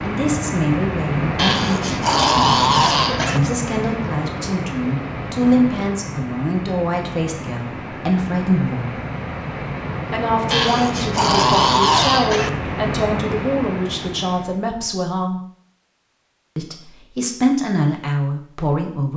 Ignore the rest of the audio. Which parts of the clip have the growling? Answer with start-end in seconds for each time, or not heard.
1.4-3.4, 10.5-12.5.